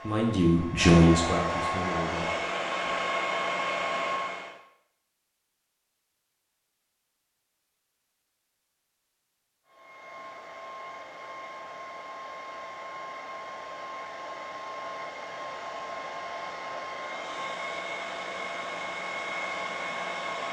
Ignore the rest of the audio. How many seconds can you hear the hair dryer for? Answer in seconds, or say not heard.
15 s.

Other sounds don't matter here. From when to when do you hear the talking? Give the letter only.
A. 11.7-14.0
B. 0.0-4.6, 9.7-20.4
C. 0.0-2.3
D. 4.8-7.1
C.